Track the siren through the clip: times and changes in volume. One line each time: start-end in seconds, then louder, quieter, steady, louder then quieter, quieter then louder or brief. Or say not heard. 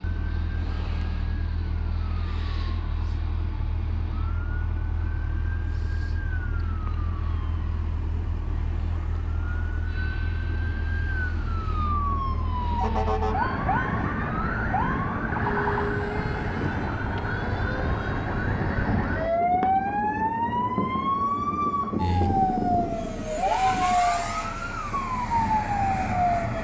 0.0-26.5 louder.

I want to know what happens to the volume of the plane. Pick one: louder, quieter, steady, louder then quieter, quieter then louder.
louder.